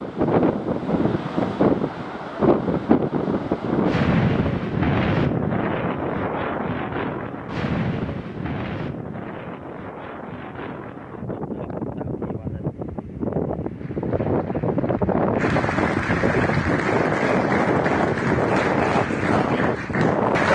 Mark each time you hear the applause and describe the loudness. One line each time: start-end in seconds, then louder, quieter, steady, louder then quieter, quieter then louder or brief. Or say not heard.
13.6-20.4 louder.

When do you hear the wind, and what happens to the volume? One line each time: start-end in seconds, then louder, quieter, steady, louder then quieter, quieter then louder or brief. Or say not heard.
0.0-20.4 quieter then louder.